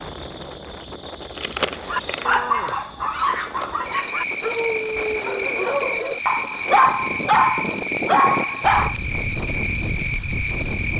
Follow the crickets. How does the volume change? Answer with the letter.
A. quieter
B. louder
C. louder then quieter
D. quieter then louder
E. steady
E.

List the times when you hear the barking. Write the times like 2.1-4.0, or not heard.
1.9-8.9.